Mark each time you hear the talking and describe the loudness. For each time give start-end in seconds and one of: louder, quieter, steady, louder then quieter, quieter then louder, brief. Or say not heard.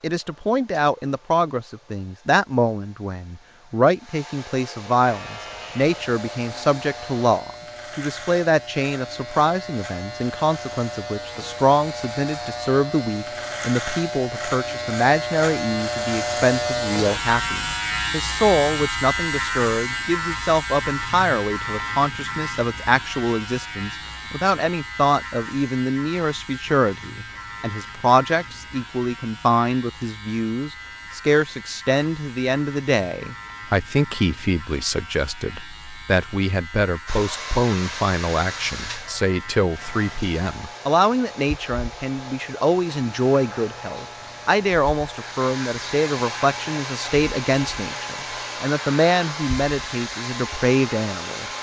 0.0-51.5 steady.